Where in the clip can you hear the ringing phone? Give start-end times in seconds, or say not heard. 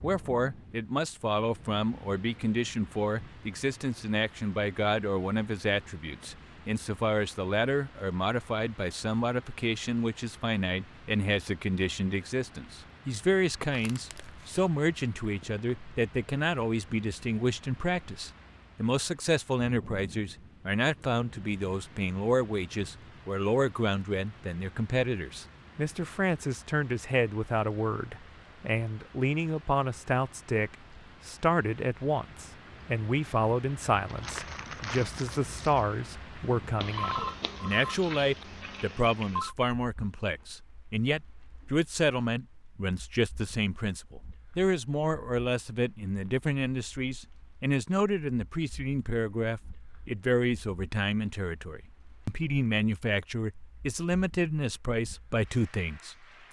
36.8-39.5.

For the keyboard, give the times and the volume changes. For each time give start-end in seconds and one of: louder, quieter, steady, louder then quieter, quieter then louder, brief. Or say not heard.
not heard.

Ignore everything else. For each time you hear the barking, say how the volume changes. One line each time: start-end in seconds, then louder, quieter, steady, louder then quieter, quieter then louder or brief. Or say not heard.
not heard.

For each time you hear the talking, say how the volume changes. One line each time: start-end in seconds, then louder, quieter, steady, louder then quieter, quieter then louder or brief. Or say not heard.
0.0-56.4 steady.